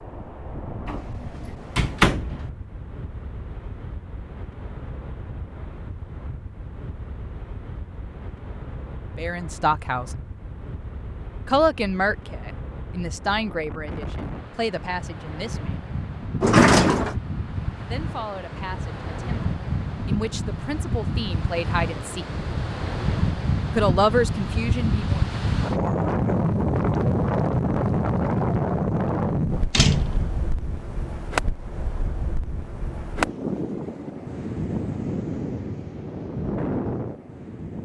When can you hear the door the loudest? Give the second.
17 s.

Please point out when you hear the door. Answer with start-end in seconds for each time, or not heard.
0.8-2.5, 16.4-17.1, 29.7-30.3.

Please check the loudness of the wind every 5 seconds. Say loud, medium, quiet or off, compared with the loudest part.
quiet, quiet, quiet, medium, medium, loud, medium, medium.